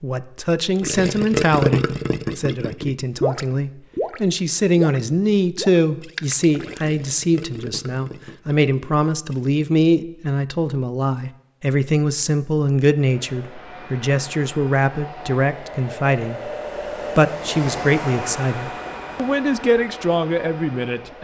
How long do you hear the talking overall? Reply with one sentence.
The talking can be heard for 20 seconds in total.